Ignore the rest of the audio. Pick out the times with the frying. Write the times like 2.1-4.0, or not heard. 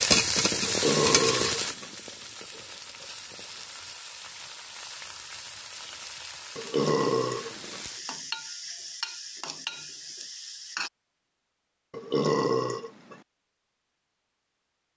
0.0-10.9.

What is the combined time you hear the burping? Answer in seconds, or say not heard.
4 s.